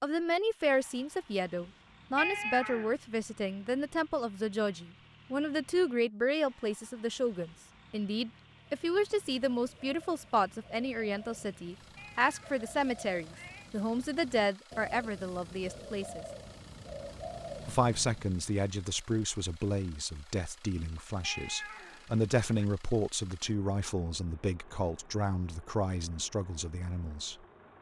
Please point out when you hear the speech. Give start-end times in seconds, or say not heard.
0.0-16.2, 17.6-27.4.